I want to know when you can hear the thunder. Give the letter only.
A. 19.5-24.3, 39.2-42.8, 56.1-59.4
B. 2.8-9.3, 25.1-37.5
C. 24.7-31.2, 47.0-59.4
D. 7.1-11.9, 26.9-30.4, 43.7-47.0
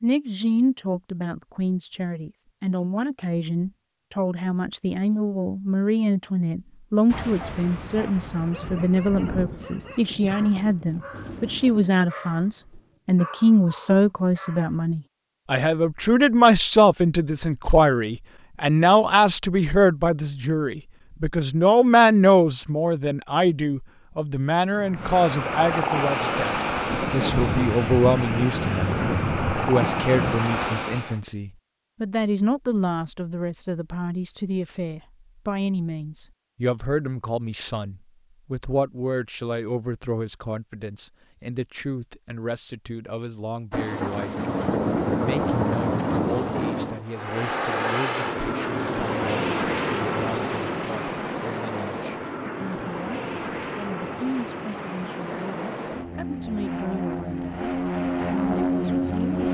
D.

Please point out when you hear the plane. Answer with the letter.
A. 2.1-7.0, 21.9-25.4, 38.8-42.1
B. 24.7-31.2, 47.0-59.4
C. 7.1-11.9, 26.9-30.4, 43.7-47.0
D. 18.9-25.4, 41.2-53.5
B.